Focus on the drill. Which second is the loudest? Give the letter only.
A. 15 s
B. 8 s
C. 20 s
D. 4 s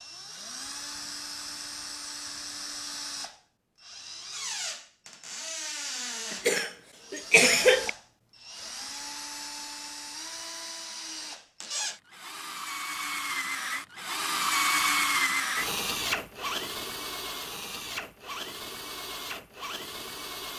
A.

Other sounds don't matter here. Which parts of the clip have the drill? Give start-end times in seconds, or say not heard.
0.0-20.5.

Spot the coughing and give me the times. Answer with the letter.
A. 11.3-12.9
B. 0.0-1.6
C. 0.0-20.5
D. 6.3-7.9
D.